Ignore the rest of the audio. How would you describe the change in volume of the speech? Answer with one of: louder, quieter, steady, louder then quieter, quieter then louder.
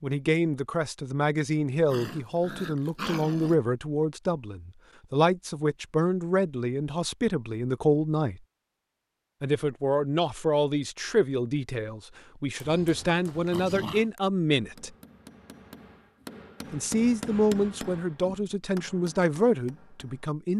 steady.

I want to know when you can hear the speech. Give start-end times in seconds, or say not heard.
0.0-8.4, 9.4-14.9, 16.7-20.5.